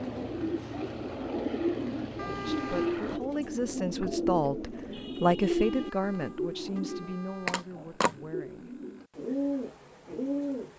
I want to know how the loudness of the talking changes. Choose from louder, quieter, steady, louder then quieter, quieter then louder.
louder then quieter.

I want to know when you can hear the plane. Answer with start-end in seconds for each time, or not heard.
0.0-3.2.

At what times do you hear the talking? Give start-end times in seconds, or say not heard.
2.2-8.8.